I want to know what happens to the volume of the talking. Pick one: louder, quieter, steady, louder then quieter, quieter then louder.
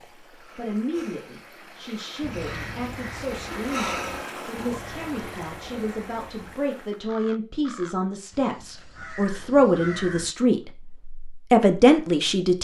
louder.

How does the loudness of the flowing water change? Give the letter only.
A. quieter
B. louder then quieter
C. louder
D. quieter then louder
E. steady
B.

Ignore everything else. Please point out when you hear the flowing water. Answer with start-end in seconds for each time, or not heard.
0.0-7.1.